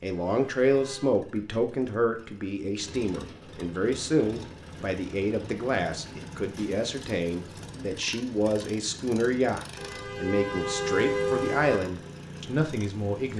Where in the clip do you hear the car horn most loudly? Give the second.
11 s.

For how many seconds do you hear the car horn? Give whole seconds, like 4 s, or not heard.
3 s.